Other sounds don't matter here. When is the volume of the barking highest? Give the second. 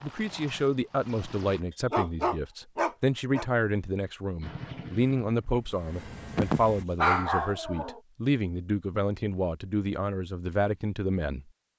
7 s.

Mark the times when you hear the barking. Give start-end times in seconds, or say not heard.
1.7-3.5, 6.3-8.0.